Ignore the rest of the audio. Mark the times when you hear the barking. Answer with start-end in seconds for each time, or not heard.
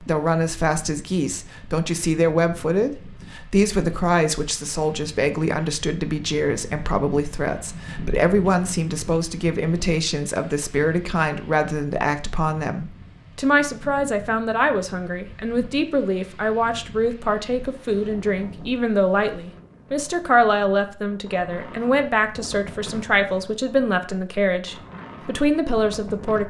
not heard.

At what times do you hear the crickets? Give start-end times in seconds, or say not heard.
not heard.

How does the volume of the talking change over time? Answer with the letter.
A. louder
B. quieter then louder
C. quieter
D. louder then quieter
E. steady
E.